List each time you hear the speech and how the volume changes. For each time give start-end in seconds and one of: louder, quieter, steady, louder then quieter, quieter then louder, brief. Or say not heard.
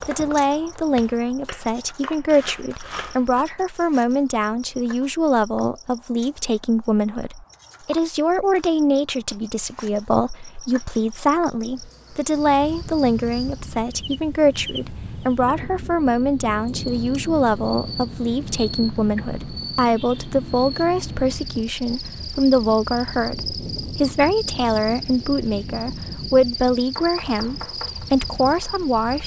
0.1-29.2 steady.